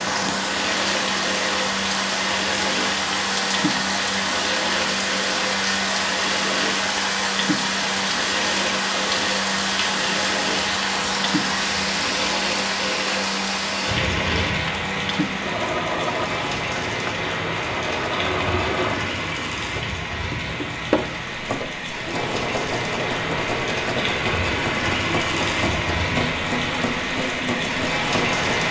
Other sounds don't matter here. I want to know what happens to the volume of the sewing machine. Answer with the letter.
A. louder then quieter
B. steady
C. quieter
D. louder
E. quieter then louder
B.